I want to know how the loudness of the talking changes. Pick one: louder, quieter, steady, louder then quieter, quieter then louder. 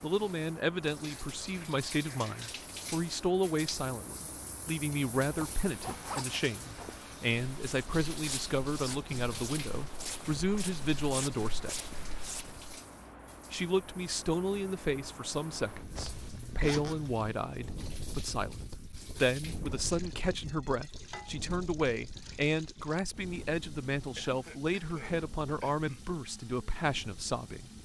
steady.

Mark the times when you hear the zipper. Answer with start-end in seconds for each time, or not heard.
5.2-6.2, 15.9-17.3.